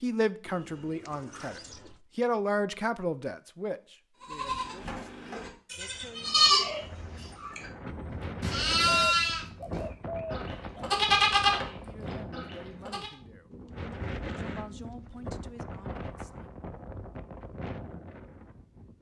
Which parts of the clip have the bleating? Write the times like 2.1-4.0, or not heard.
4.2-13.1.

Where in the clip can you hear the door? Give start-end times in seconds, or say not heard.
not heard.